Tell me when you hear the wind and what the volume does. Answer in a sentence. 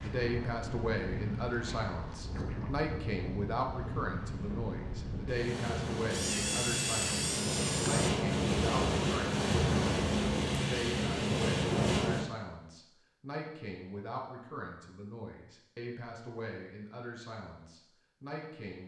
You can hear the wind from 0.0 to 12.2 s, getting louder.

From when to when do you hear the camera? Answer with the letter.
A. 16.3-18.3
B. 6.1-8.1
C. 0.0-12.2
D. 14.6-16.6
B.